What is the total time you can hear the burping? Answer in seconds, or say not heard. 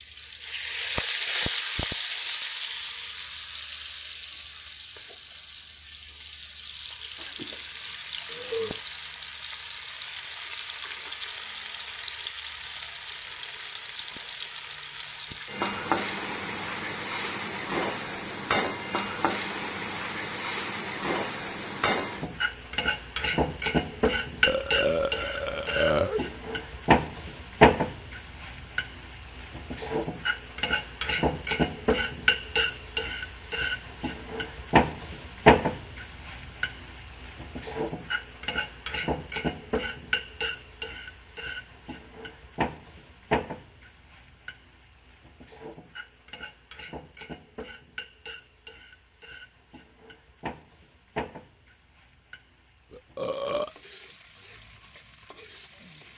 4 s.